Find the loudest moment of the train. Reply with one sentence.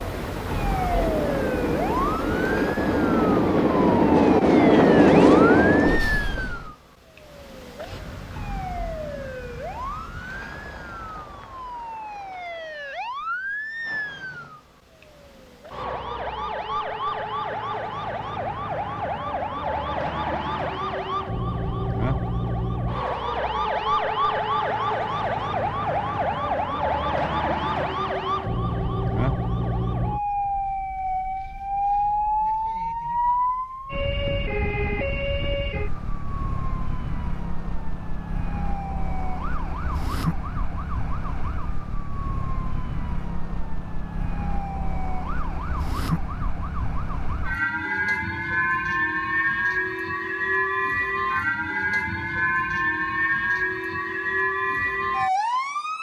The volume of the train peaks at 5 seconds.